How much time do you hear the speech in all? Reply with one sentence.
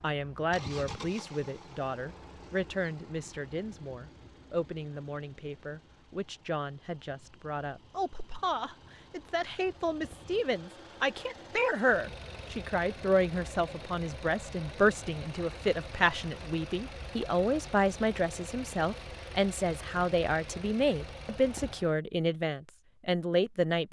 The speech can be heard for 24 seconds in total.